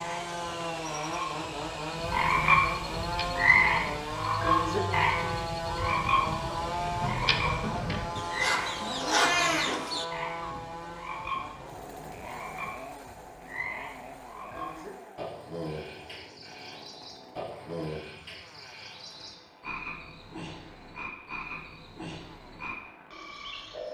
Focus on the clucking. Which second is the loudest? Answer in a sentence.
The loudest moment of the clucking is at 9 seconds.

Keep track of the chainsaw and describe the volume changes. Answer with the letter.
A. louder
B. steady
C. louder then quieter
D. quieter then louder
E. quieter
E.